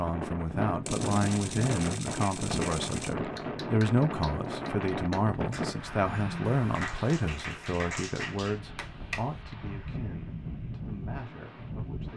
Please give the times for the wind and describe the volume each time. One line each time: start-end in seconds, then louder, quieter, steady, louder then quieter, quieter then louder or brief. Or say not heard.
0.0-12.1 quieter then louder.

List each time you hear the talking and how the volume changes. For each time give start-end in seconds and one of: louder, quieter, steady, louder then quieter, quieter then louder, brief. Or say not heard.
0.0-12.1 quieter.